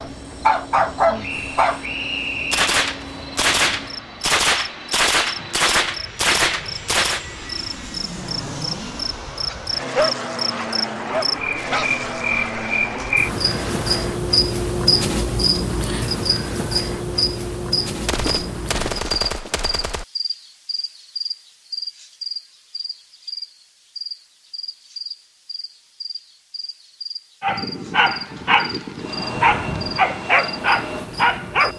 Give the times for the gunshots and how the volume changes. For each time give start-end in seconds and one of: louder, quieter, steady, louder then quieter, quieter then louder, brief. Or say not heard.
2.5-7.2 steady
18.1-20.1 brief.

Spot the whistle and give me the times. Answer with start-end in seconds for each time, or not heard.
1.2-2.6.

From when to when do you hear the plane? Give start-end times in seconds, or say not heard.
0.0-14.2, 28.9-31.7.